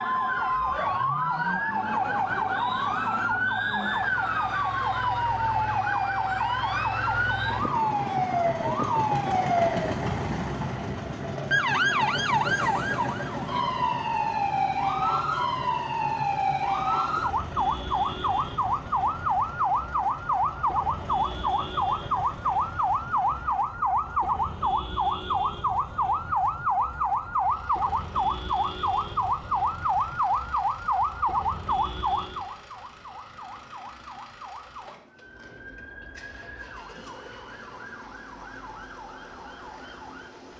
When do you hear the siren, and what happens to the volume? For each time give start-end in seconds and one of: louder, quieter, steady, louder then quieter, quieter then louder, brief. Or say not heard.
0.0-40.5 quieter.